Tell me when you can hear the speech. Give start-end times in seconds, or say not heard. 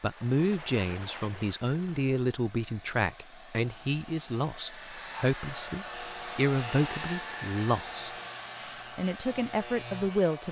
0.0-8.1, 8.9-10.4.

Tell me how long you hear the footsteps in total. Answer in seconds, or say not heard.
not heard.